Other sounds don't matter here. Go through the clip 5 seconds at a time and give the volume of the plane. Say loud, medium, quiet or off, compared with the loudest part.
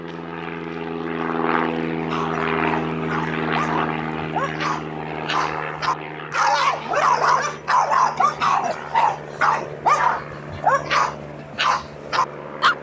loud, medium, medium.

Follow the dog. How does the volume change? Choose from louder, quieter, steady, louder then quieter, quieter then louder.
louder.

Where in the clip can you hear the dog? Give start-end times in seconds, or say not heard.
2.0-12.7.